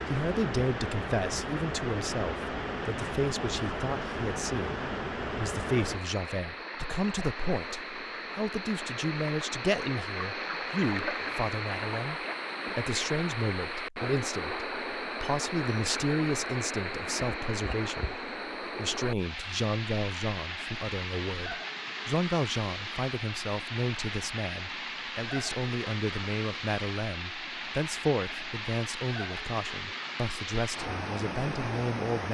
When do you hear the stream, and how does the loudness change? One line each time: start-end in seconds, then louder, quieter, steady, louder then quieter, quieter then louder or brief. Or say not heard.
0.0-32.2 steady.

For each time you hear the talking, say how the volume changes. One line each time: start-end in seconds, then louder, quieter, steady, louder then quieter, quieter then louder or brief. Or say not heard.
0.1-32.2 steady.